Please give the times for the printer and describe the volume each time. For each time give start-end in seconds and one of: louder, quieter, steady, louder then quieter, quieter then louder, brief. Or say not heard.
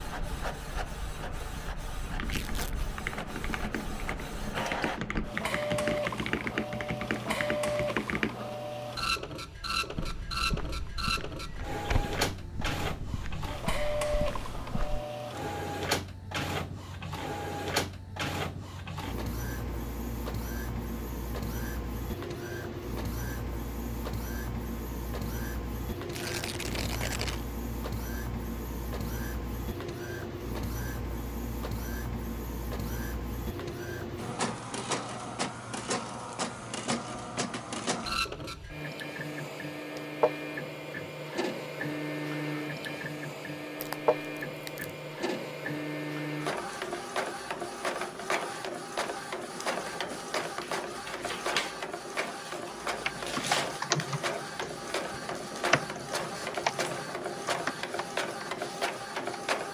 0.0-59.6 steady.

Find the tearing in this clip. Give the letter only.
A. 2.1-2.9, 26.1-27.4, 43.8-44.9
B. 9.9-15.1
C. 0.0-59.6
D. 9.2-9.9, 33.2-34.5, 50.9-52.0
A.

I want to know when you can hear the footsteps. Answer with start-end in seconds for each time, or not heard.
9.9-15.1.